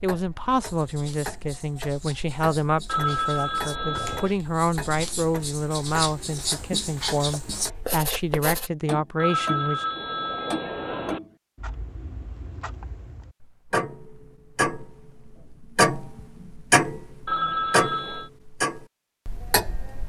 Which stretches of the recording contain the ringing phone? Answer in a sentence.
You can hear the ringing phone from 2.9 to 4.3 s, from 9.2 to 11.2 s and from 17.2 to 18.3 s.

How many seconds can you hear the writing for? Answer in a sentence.
The writing can be heard for 8 seconds in total.